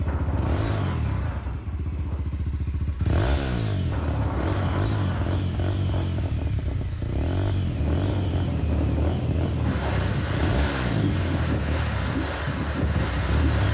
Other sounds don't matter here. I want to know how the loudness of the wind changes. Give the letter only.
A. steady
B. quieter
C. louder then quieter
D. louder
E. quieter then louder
D.